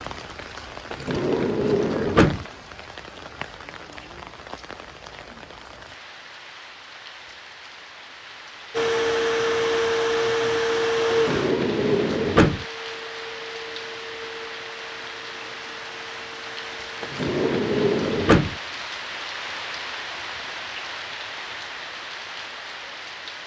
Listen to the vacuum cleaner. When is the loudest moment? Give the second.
11 s.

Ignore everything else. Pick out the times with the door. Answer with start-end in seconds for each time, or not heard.
0.9-2.5, 11.1-12.7, 17.0-18.6.